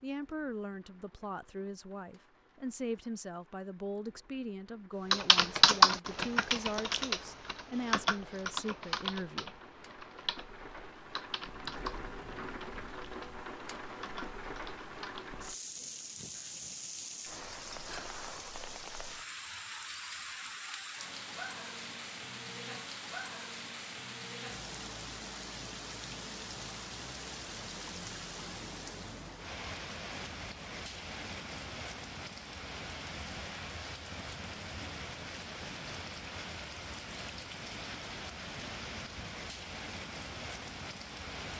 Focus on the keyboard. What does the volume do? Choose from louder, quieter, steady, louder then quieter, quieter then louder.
quieter.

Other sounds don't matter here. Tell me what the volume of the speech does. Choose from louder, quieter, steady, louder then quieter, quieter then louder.
steady.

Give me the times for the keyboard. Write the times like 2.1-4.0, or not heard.
5.1-15.3.